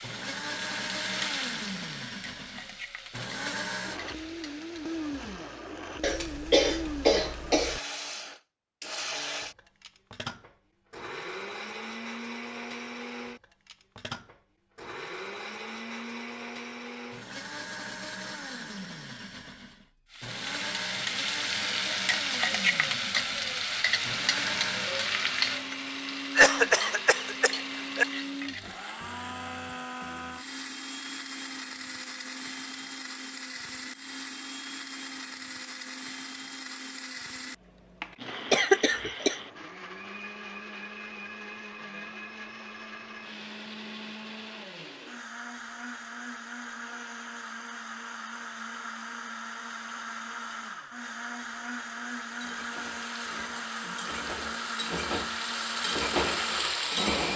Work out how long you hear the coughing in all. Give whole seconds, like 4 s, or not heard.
4 s.